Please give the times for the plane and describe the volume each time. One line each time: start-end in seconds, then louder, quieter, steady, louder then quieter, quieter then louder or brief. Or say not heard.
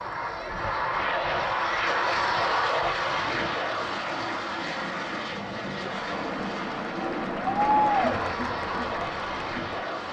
0.0-10.0 quieter.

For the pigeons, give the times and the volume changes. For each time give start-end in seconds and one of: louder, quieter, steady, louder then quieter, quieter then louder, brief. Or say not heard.
not heard.